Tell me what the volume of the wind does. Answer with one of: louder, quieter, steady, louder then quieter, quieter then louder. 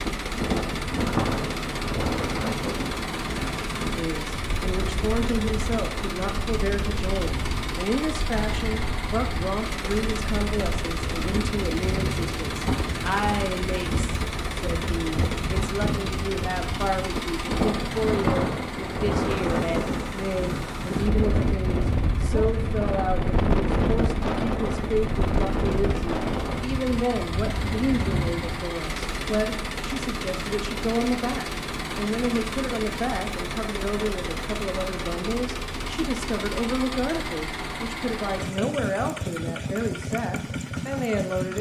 quieter then louder.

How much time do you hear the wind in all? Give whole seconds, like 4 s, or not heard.
29 s.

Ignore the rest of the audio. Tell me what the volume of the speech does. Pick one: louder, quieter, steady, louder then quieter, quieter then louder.
steady.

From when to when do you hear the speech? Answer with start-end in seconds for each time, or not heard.
4.0-41.5.